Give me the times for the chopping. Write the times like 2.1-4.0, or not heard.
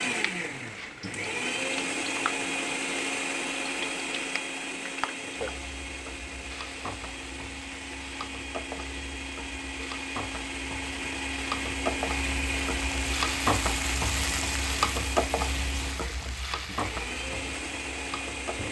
not heard.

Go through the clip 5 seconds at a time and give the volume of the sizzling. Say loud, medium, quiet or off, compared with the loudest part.
medium, medium, loud, loud.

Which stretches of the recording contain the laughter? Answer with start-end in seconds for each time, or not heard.
not heard.